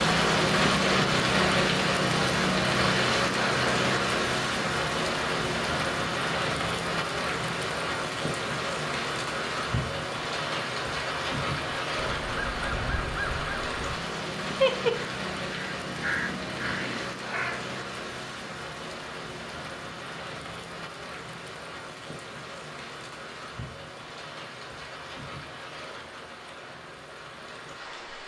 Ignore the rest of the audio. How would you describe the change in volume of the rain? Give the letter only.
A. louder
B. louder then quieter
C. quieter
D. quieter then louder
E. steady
C.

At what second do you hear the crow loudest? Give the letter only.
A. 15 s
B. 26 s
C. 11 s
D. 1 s
A.